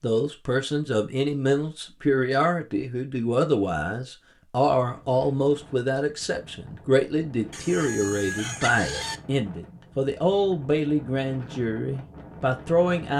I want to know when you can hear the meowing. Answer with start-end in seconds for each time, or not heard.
not heard.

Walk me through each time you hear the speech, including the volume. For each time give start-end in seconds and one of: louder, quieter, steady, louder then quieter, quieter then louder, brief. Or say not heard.
0.0-13.1 steady.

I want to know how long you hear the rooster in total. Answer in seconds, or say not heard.
2 s.